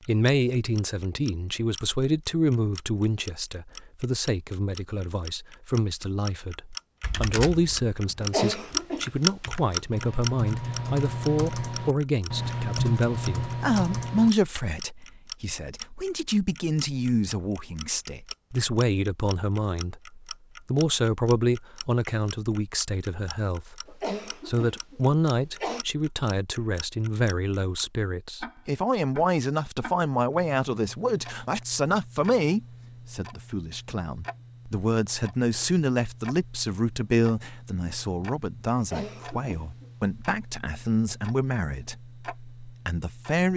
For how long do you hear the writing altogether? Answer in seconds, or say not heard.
not heard.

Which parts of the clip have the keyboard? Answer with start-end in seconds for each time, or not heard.
7.0-14.6.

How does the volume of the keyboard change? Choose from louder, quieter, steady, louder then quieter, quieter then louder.
quieter then louder.